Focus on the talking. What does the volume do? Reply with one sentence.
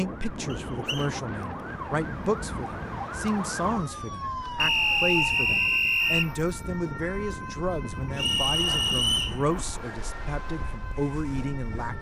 The loudness of the talking stays about the same.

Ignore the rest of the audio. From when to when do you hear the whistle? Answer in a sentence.
The whistle can be heard from 0.5 to 1.1 s, from 4.5 to 6.3 s and from 8.2 to 9.4 s.